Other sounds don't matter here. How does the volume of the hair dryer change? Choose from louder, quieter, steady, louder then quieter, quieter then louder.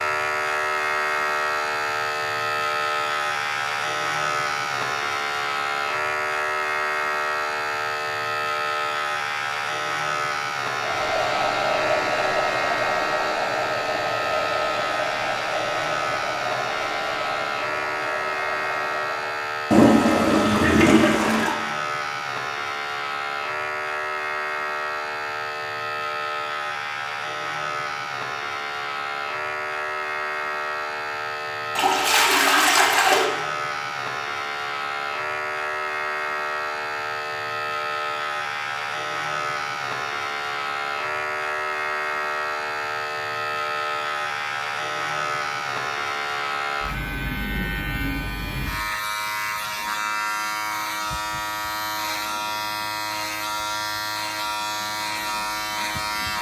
quieter.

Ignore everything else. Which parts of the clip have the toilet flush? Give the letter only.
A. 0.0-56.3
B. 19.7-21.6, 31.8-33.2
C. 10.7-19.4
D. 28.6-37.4
B.